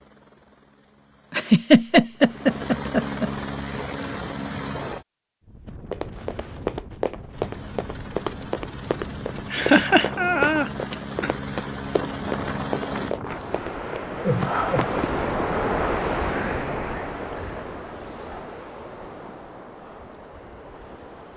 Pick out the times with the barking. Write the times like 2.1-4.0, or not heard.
not heard.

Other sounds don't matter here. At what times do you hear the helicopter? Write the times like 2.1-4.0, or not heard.
0.0-5.0, 7.3-13.2.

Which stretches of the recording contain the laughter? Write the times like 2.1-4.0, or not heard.
1.3-3.3, 9.5-11.3, 14.2-15.0.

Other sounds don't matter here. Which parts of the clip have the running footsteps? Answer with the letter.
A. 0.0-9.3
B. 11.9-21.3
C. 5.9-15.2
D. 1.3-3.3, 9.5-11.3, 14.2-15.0
C.